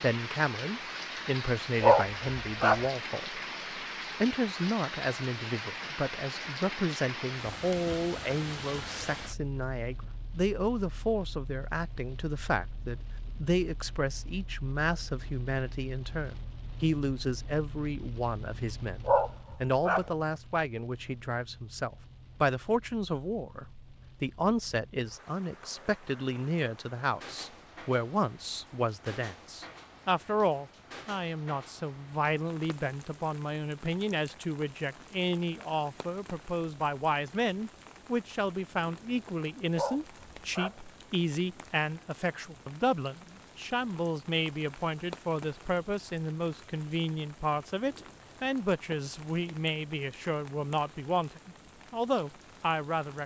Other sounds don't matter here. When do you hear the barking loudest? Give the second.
2 s.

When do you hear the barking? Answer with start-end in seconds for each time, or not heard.
1.8-2.9, 19.1-20.1, 39.8-40.8.